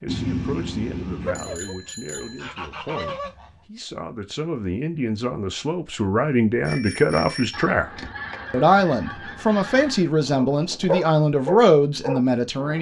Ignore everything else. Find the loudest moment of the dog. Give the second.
11 s.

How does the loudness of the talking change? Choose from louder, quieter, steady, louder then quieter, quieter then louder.
louder.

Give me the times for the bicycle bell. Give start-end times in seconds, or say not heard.
0.1-2.5, 6.6-7.7.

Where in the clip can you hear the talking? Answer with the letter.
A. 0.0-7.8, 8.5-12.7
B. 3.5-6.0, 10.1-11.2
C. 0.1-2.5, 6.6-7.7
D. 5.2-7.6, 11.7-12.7
A.